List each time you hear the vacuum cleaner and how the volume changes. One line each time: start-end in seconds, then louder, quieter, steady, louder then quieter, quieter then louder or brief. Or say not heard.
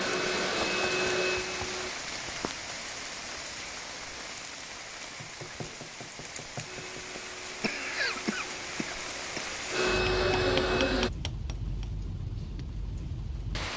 0.0-1.9 brief
6.7-11.1 louder.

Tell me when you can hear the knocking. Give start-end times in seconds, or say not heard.
0.6-1.7, 5.2-7.2, 10.1-11.8.